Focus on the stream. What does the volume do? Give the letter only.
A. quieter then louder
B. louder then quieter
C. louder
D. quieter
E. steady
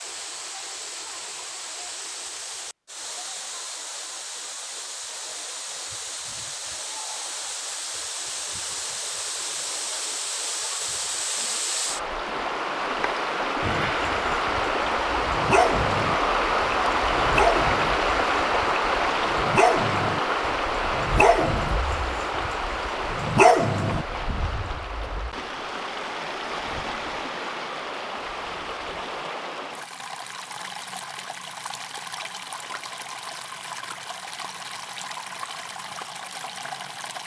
B.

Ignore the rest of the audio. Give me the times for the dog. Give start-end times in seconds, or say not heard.
13.6-24.4.